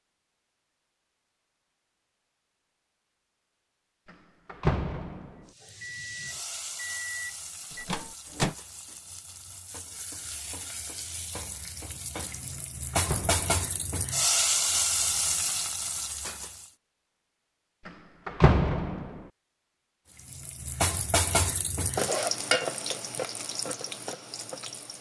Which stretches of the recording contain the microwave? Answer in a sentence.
The microwave can be heard from 5.8 to 8.6 s.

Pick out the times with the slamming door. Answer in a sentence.
You can hear the slamming door from 4.1 to 5.5 s, from 12.5 to 13.8 s and from 17.9 to 19.2 s.